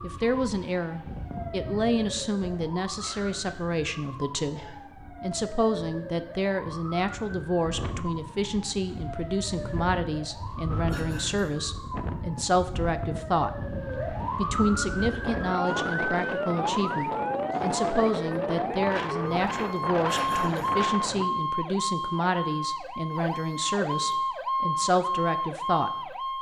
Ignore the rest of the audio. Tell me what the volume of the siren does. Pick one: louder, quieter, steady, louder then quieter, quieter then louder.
louder.